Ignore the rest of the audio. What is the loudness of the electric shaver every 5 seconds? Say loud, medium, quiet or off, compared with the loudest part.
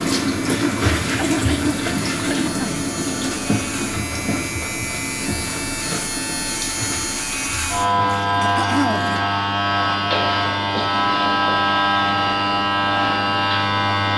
quiet, loud, loud.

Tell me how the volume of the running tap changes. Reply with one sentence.
The volume of the running tap goes down.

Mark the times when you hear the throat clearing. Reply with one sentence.
You can hear the throat clearing from 0.4 to 2.8 s and from 8.4 to 9.2 s.